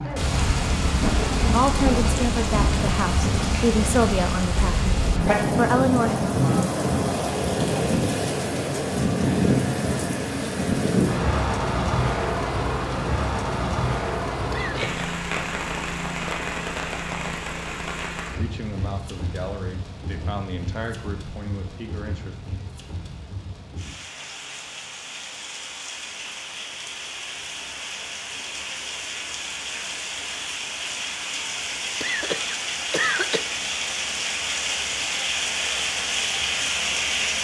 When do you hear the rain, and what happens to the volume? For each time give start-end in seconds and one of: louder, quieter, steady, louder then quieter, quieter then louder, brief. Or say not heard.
0.0-37.3 quieter then louder.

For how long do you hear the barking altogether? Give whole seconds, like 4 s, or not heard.
not heard.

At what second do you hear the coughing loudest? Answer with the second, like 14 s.
33 s.